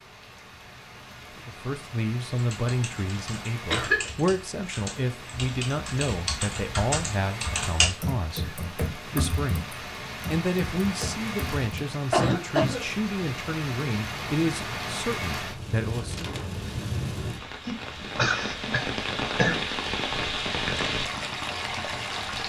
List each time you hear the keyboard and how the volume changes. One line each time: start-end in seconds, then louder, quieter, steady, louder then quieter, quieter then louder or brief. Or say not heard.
2.3-11.8 louder then quieter.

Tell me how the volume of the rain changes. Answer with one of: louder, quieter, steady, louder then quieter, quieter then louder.
louder.